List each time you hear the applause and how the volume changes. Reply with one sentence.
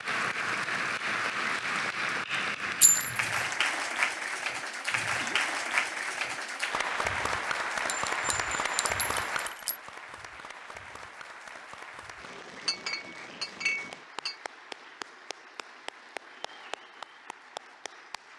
The applause can be heard from 0.0 to 18.3 s, getting quieter.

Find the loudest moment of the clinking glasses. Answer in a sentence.
The volume of the clinking glasses peaks at 3 seconds.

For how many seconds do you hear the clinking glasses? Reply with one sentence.
You can hear the clinking glasses for 4 seconds altogether.